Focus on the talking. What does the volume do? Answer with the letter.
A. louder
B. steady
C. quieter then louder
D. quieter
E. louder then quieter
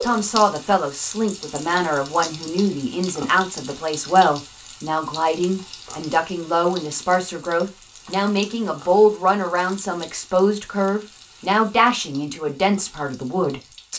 B.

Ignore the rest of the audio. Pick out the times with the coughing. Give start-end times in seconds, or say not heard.
not heard.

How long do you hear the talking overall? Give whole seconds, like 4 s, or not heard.
14 s.